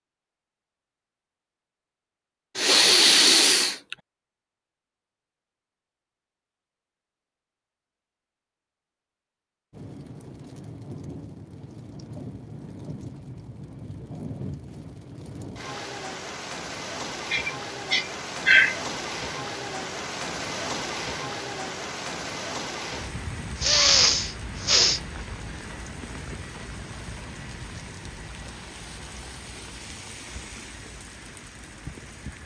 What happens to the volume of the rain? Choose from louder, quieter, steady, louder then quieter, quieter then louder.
louder then quieter.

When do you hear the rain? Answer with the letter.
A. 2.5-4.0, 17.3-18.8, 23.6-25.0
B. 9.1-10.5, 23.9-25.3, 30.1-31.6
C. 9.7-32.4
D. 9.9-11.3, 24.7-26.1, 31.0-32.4
C.